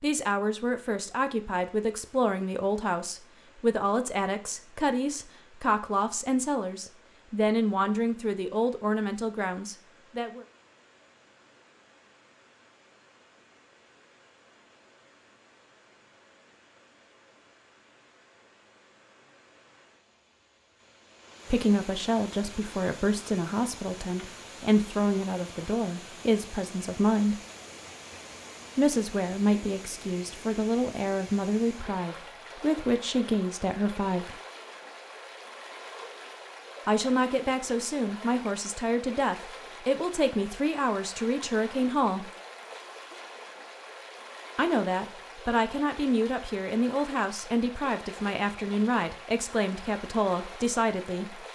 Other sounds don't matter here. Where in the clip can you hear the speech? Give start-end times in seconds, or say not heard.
0.0-10.4, 21.5-27.4, 28.8-34.4, 36.9-42.3, 44.5-51.4.